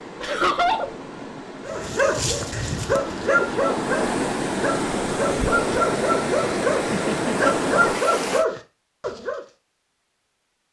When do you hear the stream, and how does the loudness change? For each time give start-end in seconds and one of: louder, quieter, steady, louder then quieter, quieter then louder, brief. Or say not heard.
0.0-8.4 louder.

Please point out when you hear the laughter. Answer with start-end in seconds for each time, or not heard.
0.2-0.9, 6.9-7.5.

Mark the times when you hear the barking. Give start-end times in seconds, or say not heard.
1.6-9.4.